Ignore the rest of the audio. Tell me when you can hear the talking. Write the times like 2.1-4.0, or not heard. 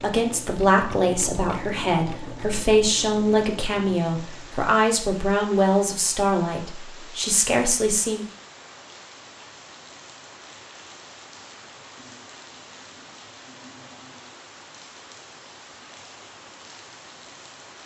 0.0-8.2.